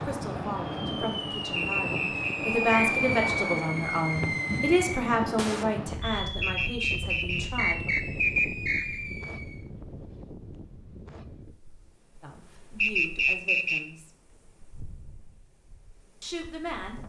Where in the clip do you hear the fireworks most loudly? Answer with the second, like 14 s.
3 s.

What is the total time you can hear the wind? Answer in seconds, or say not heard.
17 s.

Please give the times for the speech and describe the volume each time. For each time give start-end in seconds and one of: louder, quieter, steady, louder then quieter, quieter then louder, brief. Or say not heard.
0.0-7.9 louder then quieter
12.2-14.1 brief
16.2-17.0 brief.